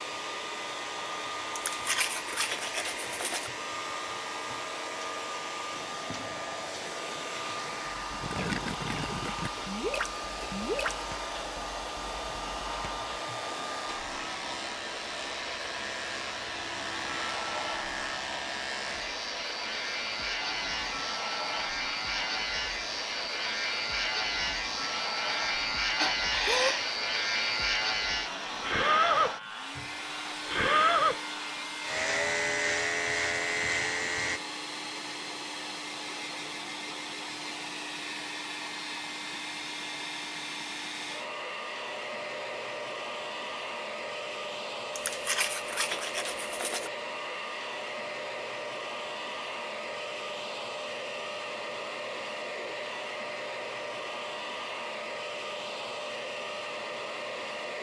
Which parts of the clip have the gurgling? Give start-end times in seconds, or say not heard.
5.7-10.9.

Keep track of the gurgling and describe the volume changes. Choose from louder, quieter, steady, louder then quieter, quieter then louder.
louder.